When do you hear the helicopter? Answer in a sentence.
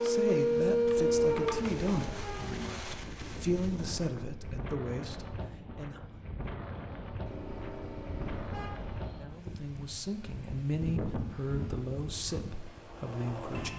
You can hear the helicopter from 11.2 to 13.7 s.